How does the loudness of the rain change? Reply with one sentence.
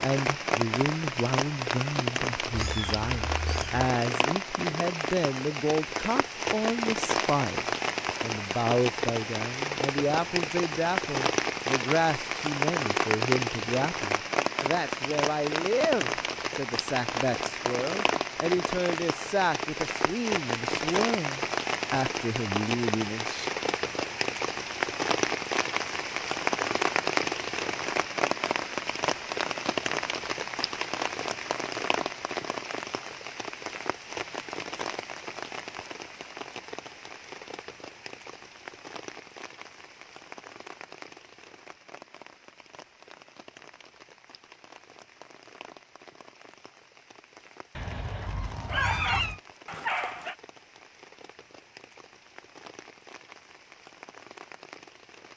The volume of the rain goes down.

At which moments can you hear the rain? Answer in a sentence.
The rain can be heard from 0.0 to 55.3 s.